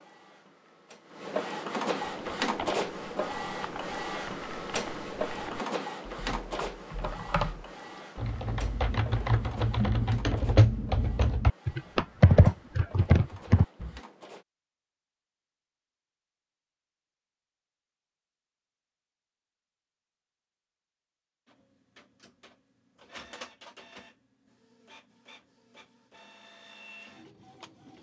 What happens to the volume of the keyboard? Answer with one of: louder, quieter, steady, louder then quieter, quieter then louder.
louder.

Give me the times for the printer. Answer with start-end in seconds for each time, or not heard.
0.0-14.4, 21.4-27.9.